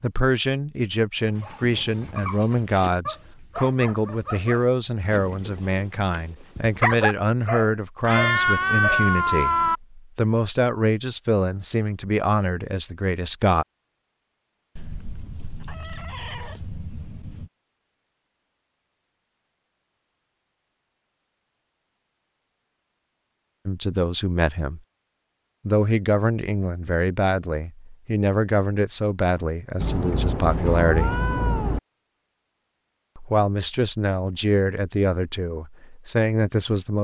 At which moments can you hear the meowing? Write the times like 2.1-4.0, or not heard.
8.0-9.8, 14.8-17.5, 29.8-31.8.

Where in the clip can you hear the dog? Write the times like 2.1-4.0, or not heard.
1.2-9.1.